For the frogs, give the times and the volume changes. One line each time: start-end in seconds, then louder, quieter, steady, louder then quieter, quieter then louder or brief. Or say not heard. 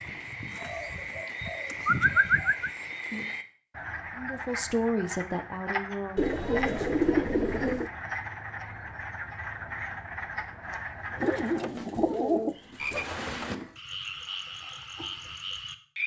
0.0-16.0 steady.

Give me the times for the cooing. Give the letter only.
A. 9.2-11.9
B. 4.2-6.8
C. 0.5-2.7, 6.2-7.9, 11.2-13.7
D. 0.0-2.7
C.